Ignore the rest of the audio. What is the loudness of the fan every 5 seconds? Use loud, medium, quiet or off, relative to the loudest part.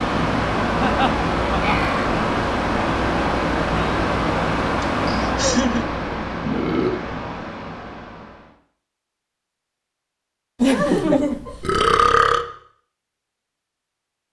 loud, medium, off.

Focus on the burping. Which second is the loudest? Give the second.
12 s.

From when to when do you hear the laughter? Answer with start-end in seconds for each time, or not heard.
0.8-1.9, 4.8-5.8, 10.6-11.8.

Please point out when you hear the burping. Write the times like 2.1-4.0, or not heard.
1.6-2.0, 6.4-7.0, 11.6-12.4.